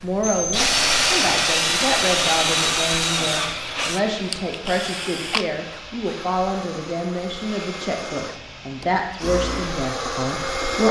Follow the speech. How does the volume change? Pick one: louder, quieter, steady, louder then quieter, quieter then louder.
steady.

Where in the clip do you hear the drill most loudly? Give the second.
1 s.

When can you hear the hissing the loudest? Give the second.
1 s.